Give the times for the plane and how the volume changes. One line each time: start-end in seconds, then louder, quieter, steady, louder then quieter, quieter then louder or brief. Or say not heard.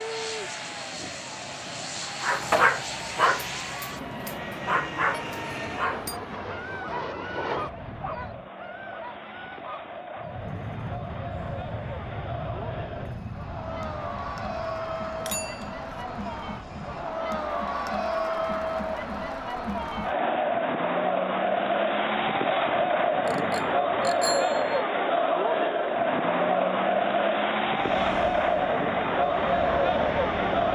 0.0-8.5 steady
10.2-17.2 quieter
27.8-30.7 brief.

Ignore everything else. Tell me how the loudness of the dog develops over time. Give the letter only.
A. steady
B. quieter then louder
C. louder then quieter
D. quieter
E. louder
D.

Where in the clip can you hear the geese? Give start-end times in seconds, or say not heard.
not heard.